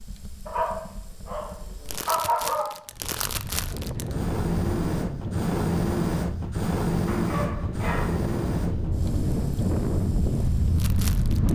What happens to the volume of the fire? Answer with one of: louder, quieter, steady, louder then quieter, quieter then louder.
louder then quieter.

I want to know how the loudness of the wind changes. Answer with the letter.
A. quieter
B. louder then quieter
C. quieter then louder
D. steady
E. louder
E.